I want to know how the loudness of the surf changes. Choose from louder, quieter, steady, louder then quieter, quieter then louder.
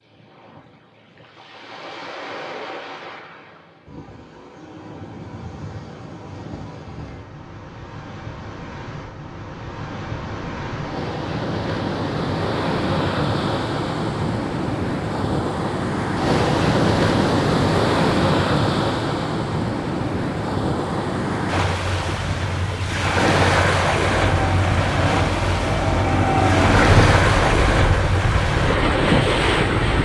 louder.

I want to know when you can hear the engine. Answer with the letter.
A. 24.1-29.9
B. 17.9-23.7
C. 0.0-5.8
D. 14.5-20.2
A.